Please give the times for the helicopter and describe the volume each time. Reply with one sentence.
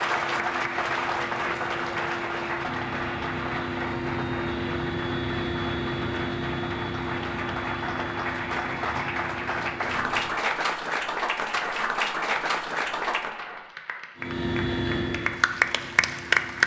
You can hear the helicopter from 0.0 to 10.4 s, getting louder then quieter; and briefly from 14.2 to 16.6 s.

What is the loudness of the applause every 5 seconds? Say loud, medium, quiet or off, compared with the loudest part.
medium, medium, medium, loud.